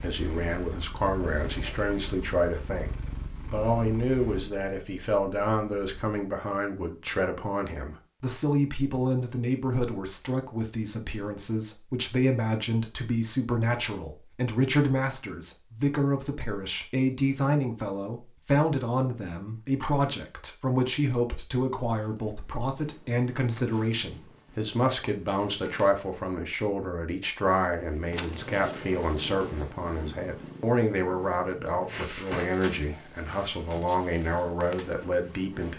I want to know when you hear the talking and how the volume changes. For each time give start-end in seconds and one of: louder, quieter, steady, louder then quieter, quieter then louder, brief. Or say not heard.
0.0-35.7 steady.